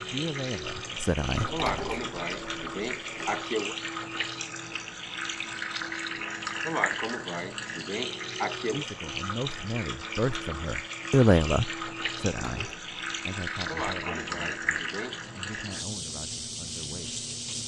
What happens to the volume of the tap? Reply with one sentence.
The volume of the tap stays about the same.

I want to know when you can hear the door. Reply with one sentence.
You can hear the door from 1.3 to 3.5 s and from 12.3 to 12.8 s.